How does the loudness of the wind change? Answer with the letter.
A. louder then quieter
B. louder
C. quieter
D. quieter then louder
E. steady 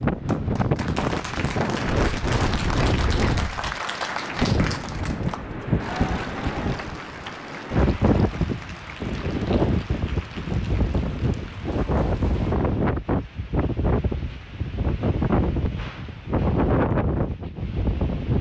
E.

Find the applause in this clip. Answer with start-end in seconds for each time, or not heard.
0.0-12.6.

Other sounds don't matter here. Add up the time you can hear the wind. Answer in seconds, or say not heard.
18 s.